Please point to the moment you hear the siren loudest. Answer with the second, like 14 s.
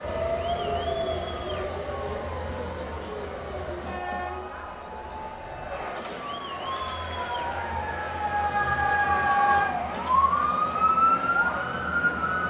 11 s.